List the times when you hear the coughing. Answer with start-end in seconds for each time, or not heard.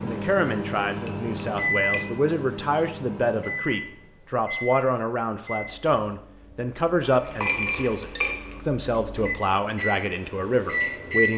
not heard.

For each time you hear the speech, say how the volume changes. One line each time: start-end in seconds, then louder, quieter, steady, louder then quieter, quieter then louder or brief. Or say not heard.
0.0-11.3 steady.